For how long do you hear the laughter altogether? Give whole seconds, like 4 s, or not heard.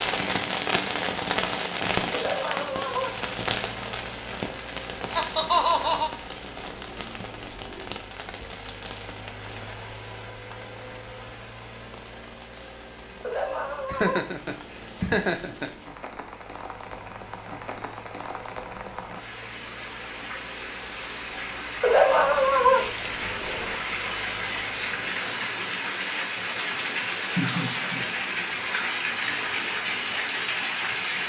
4 s.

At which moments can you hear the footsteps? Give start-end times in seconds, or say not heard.
not heard.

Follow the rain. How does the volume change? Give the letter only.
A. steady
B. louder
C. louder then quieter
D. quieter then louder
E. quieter
D.